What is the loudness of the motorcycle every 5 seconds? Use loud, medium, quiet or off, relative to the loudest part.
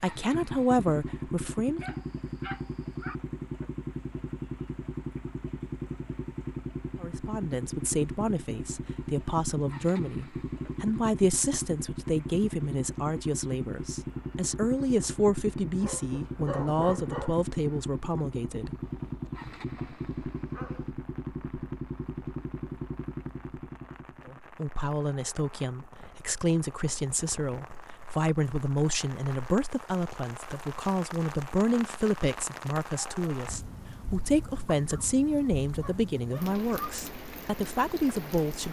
loud, loud, loud, loud, loud, off, off, off.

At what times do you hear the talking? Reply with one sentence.
You can hear the talking from 0.0 to 1.9 s, from 7.0 to 18.8 s and from 24.2 to 38.6 s.